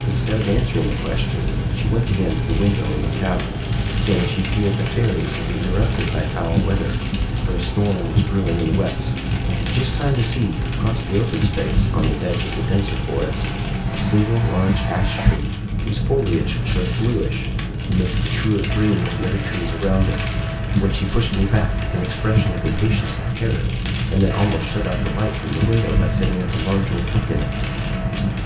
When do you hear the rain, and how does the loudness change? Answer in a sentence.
The rain can be heard from 0.0 to 28.4 s, at a steady volume.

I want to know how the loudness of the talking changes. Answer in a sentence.
The volume of the talking stays about the same.